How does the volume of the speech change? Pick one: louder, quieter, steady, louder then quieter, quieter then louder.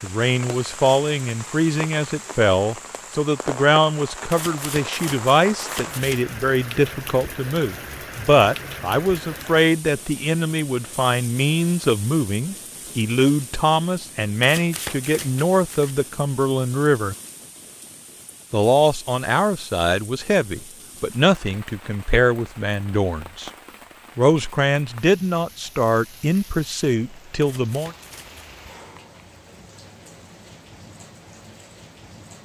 steady.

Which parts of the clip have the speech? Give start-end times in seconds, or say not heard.
0.0-17.1, 18.5-23.5, 24.1-27.9.